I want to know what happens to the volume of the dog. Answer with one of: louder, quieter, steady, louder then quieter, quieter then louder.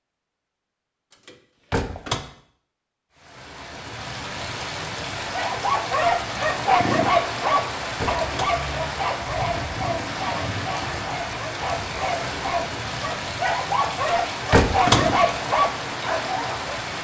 quieter then louder.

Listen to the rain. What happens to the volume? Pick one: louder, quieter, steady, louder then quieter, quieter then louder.
steady.